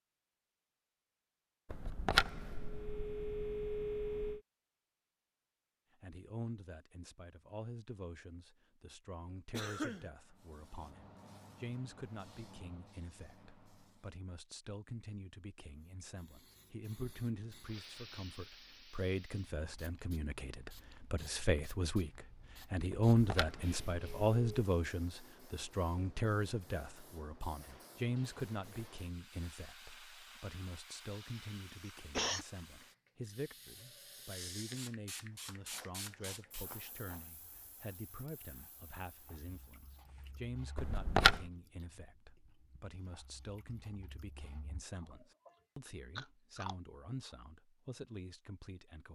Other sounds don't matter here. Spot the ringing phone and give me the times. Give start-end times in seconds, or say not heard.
1.7-4.4, 22.9-24.6, 40.8-41.5.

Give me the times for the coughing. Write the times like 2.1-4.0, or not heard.
9.5-10.1, 31.1-32.5.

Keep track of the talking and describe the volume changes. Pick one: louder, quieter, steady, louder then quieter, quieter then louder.
louder then quieter.